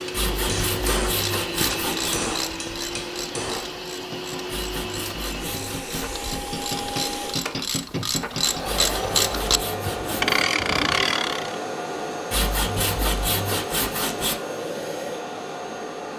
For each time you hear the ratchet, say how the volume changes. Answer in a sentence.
The ratchet can be heard from 0.2 to 11.6 s, getting quieter then louder.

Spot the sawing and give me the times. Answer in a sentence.
The sawing can be heard from 0.1 to 2.2 s, from 4.5 to 6.0 s, from 8.7 to 10.4 s and from 12.3 to 14.3 s.